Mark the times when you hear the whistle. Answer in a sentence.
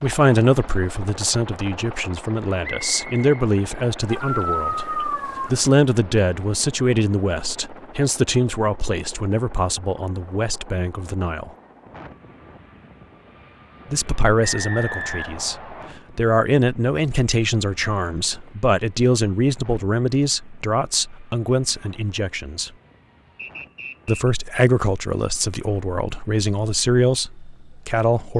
You can hear the whistle from 2.6 to 3.3 s, from 14.4 to 15.9 s and from 23.4 to 24.3 s.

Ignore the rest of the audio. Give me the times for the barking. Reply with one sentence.
You can hear the barking from 4.0 to 5.5 s.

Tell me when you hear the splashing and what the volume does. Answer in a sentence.
The splashing can't be heard in this clip.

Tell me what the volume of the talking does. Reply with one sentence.
The volume of the talking stays about the same.